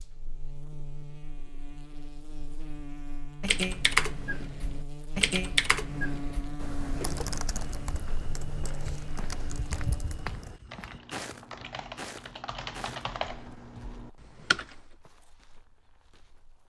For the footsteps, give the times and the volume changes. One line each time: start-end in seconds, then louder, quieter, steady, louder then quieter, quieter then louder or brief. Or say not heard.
7.0-16.6 louder then quieter.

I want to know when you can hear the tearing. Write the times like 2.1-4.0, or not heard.
not heard.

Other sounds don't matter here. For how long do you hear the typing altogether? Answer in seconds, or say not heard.
11 s.